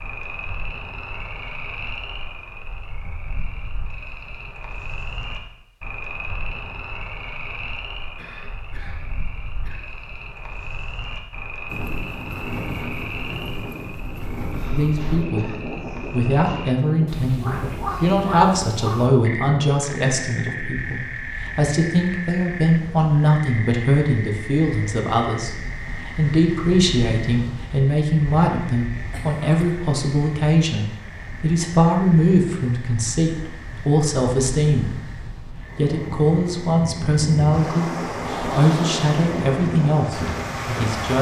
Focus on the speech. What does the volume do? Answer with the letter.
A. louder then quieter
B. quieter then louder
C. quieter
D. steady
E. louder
D.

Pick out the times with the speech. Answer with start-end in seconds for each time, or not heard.
14.7-35.1, 35.8-41.1.